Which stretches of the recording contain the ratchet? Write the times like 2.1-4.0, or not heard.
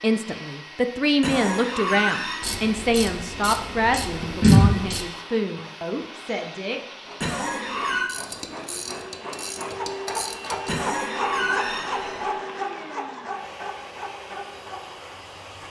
2.4-5.0, 8.1-10.8.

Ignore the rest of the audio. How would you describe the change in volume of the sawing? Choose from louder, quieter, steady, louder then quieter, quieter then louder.
louder then quieter.